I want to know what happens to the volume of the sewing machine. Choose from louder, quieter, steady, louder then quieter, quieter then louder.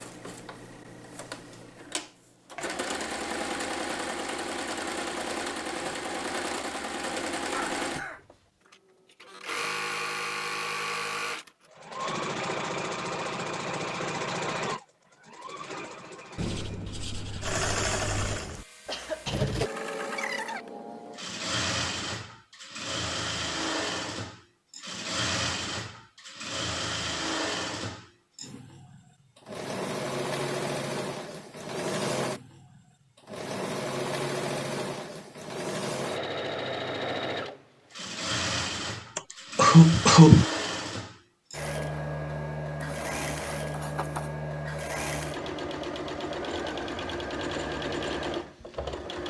steady.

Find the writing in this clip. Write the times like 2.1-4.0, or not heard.
16.4-18.4, 42.8-44.3.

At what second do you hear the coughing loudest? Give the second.
40 s.